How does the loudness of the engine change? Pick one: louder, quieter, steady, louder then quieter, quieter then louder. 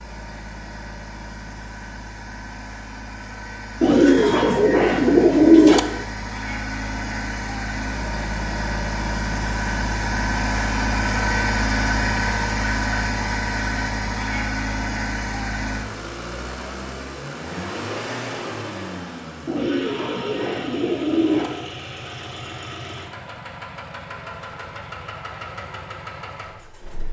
louder then quieter.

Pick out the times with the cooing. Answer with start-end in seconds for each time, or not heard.
3.8-5.8, 19.4-21.5.